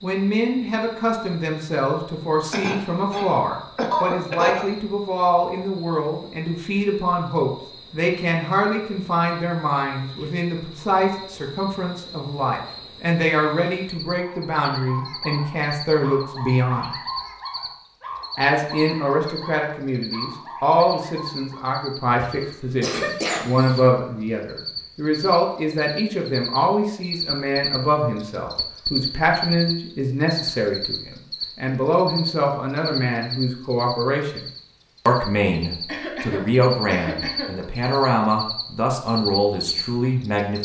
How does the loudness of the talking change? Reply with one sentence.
The loudness of the talking stays about the same.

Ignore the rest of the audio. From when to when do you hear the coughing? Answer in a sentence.
The coughing can be heard from 2.5 to 4.7 s, from 22.1 to 23.8 s and from 35.9 to 37.5 s.